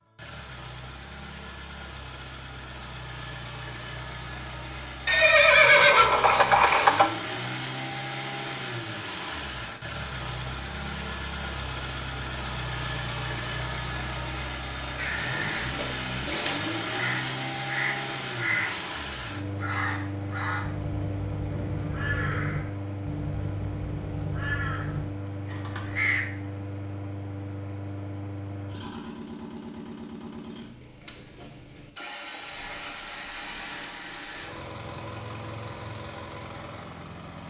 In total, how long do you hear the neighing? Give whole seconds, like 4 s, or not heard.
3 s.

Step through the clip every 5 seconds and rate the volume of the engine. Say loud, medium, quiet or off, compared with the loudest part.
medium, loud, loud, loud, medium, medium, medium, medium.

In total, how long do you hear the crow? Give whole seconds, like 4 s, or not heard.
11 s.